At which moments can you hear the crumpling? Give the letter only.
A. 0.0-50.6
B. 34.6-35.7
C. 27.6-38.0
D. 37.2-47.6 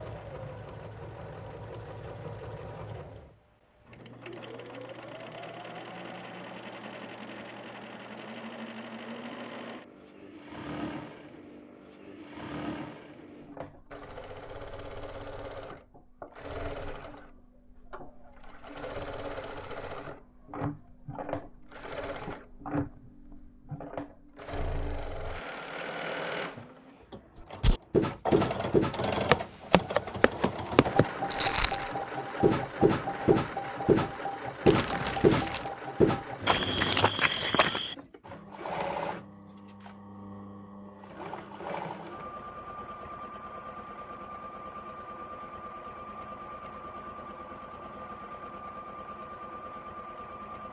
B.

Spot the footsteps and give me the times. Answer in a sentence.
You can hear the footsteps from 27.6 to 38.0 s.